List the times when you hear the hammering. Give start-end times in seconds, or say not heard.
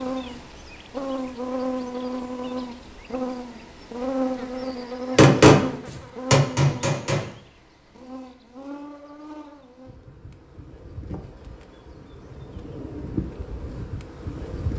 5.2-7.2.